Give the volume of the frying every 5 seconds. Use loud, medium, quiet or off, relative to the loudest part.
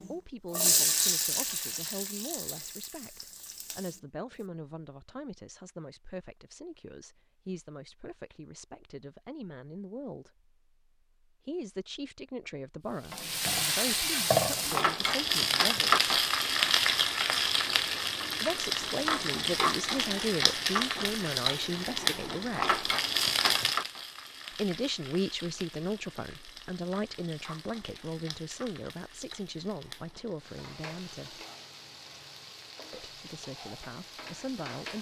medium, off, loud, loud, loud, quiet, quiet.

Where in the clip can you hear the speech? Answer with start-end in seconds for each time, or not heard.
0.0-10.5, 11.4-16.1, 18.4-22.8, 24.5-31.4, 32.9-34.9.